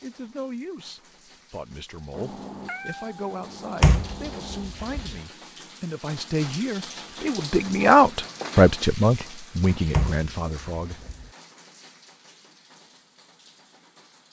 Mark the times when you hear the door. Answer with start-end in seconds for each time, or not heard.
3.8-5.2, 9.9-11.3.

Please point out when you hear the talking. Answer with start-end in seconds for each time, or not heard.
0.0-11.1.